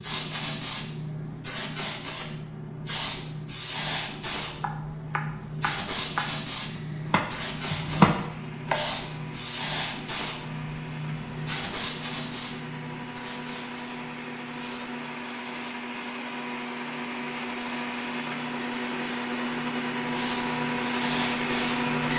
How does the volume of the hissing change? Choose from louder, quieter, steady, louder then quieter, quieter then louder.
quieter then louder.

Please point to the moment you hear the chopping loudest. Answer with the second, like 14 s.
8 s.